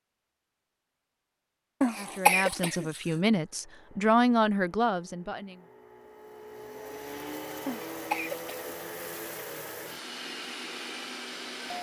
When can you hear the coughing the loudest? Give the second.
2 s.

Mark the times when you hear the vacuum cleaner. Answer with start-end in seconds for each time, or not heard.
3.2-11.7.